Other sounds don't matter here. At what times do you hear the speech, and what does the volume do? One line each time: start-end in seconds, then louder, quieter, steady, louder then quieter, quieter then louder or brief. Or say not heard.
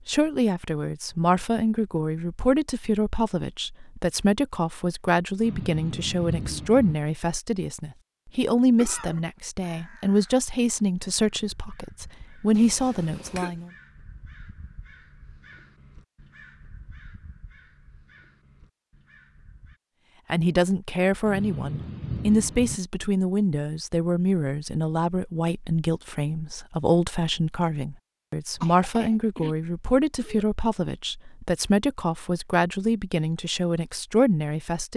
0.1-13.7 steady
20.3-34.9 steady.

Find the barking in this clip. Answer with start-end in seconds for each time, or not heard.
not heard.